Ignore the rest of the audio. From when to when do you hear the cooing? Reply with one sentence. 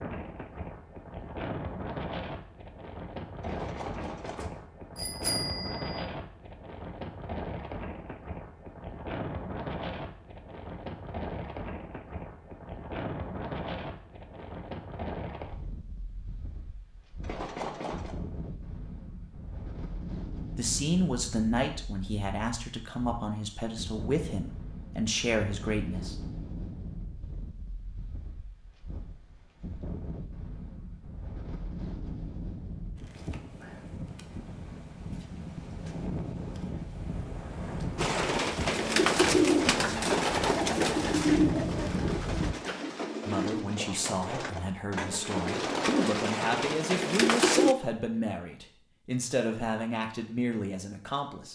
You can hear the cooing from 38.0 to 47.8 s.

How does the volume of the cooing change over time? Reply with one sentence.
The volume of the cooing goes down, then up.